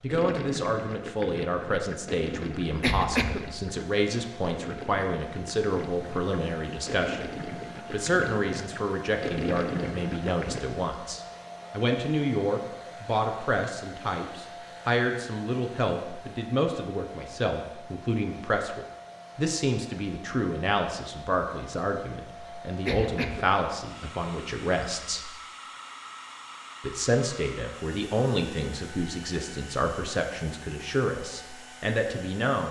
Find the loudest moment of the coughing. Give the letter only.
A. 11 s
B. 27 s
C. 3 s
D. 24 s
C.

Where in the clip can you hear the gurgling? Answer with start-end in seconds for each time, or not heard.
0.1-10.6.